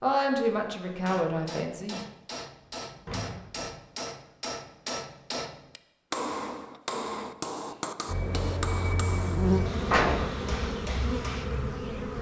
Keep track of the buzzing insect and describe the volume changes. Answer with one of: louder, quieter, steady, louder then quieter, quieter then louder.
louder then quieter.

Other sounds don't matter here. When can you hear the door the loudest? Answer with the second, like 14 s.
10 s.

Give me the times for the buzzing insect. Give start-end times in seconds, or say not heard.
8.1-12.1.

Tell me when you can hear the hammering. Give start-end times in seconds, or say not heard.
0.3-11.5.